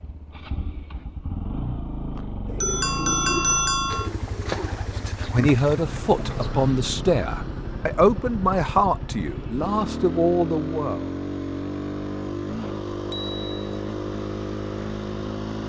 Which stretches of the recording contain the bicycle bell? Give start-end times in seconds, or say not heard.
2.1-4.1, 12.6-13.8.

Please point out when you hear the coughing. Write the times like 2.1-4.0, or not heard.
not heard.